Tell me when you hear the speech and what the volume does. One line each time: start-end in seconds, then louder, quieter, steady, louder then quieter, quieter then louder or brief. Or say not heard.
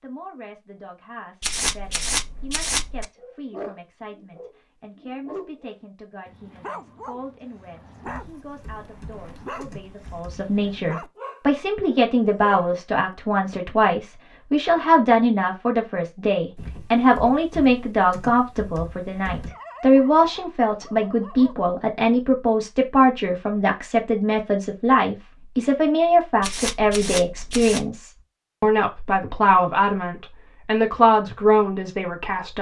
0.0-32.5 louder.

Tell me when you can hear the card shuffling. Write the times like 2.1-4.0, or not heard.
1.4-3.0, 26.4-27.9.